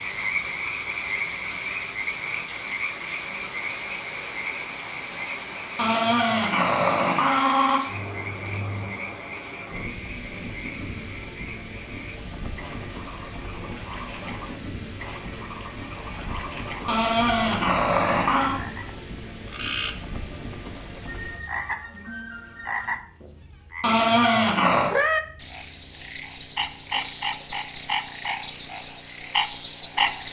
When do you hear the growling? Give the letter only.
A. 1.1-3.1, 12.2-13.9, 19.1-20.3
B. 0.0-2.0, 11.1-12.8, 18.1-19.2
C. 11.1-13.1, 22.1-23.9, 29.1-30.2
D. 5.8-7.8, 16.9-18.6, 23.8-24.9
D.